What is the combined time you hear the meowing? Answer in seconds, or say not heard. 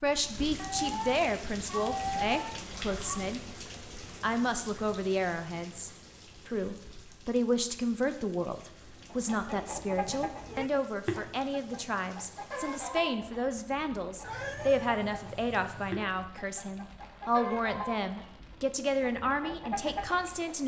5 s.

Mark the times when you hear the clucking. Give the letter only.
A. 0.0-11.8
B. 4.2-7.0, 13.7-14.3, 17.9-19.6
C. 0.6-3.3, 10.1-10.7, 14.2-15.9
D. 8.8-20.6
D.